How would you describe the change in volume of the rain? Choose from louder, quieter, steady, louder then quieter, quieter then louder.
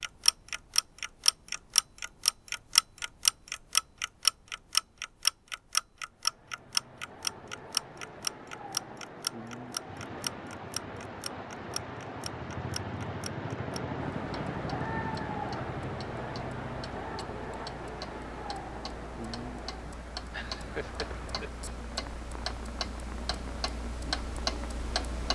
louder then quieter.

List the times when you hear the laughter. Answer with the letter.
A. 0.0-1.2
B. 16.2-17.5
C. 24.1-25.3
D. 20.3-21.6
D.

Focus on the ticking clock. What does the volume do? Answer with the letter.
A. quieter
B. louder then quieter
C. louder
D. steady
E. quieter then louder
E.